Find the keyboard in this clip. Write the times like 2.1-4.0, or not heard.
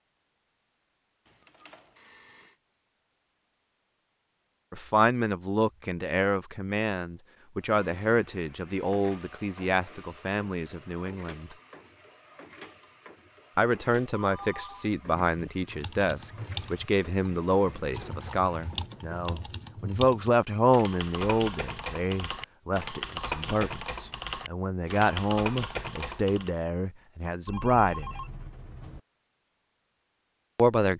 15.7-26.5.